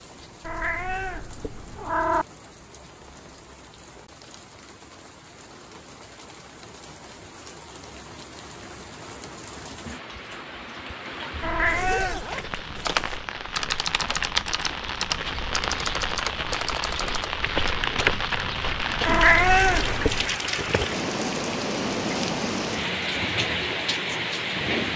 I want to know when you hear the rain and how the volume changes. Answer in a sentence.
You can hear the rain from 0.0 to 24.9 s, getting louder.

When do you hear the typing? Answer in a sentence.
The typing can be heard from 12.8 to 19.1 s.